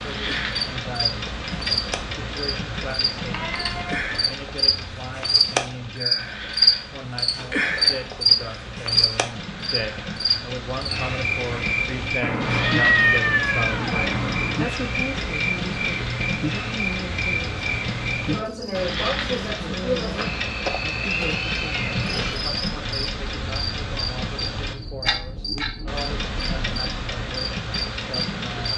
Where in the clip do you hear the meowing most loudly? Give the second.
13 s.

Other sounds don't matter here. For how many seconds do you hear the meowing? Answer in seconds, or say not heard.
5 s.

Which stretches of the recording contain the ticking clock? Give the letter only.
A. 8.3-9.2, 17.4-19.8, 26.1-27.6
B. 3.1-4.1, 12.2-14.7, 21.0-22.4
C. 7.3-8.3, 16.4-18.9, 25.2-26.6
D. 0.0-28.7
D.